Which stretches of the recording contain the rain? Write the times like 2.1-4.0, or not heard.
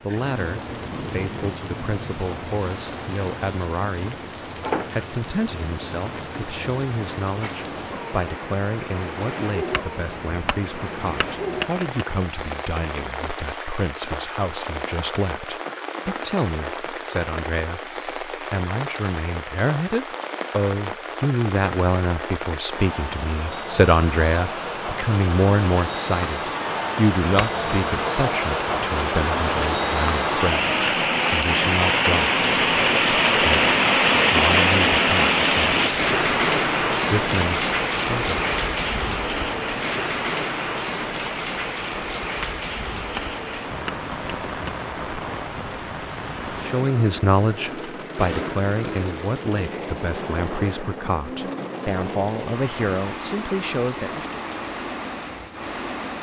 0.0-56.1.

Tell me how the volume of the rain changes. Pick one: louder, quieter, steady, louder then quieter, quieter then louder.
louder then quieter.